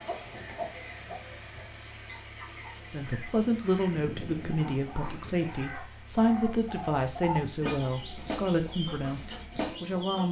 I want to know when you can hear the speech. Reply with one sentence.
You can hear the speech from 2.9 to 10.2 s.